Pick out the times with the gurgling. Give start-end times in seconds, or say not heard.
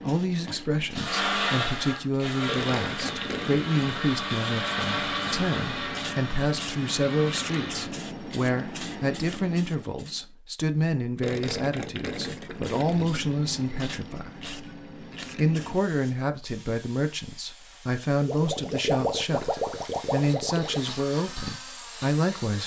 2.5-3.8, 11.2-13.2, 18.2-20.8.